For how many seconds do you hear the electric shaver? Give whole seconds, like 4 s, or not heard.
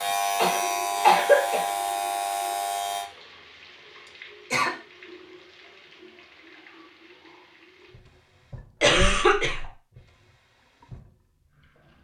3 s.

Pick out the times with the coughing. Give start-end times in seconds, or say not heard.
0.3-1.6, 4.0-4.7, 8.8-9.7.